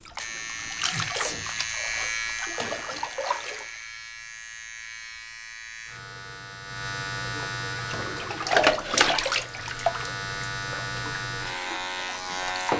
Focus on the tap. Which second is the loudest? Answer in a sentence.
The volume of the tap peaks at 9 seconds.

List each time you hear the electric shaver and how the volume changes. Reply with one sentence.
You can hear the electric shaver from 0.0 to 12.7 s, getting quieter then louder.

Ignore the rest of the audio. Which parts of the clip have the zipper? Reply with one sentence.
You can't hear the zipper here.